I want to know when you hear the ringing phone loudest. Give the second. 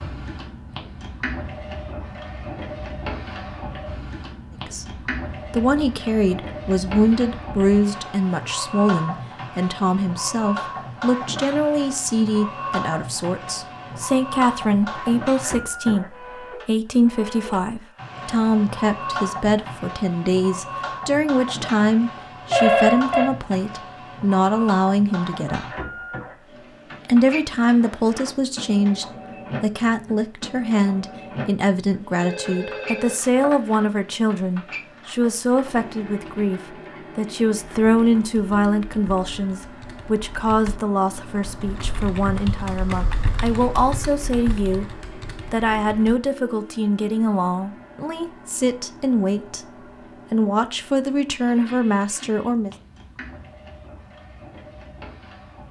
23 s.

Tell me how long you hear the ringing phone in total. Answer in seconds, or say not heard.
2 s.